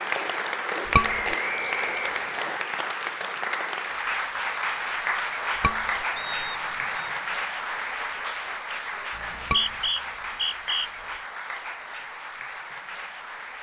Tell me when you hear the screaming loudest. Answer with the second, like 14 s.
1 s.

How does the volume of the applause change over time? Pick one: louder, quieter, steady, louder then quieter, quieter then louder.
quieter.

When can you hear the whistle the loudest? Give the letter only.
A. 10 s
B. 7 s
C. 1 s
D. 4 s
A.